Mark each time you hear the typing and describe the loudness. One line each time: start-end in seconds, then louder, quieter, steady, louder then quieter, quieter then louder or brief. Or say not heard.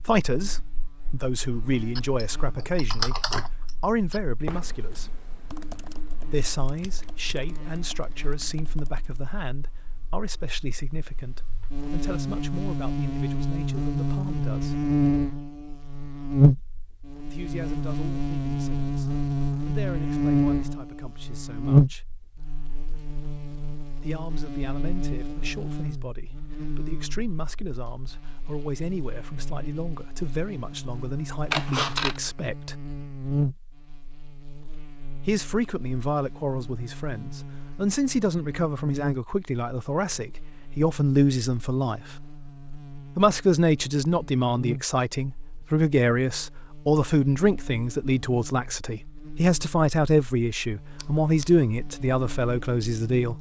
1.9-9.3 quieter.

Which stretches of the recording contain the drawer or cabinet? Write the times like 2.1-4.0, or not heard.
not heard.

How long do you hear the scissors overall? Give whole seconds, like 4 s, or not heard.
2 s.